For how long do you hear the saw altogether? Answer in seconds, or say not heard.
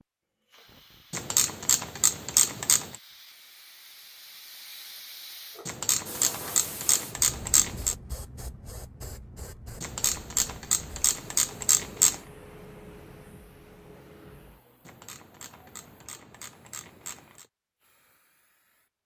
not heard.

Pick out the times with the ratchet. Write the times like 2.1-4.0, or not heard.
1.1-3.0, 5.7-8.0, 9.8-12.2, 14.8-17.4.